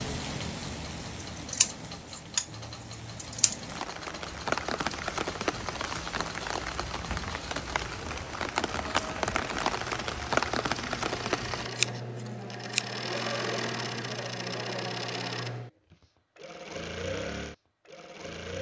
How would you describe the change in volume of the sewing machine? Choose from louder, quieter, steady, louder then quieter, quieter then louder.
louder.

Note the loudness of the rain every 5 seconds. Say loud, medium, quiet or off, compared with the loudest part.
medium, loud, loud, off.